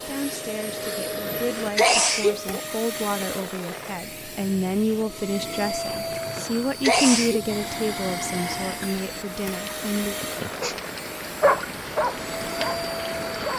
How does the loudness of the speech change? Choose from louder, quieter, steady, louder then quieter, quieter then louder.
louder then quieter.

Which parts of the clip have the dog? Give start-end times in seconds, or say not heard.
11.4-13.5.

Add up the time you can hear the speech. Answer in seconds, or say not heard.
10 s.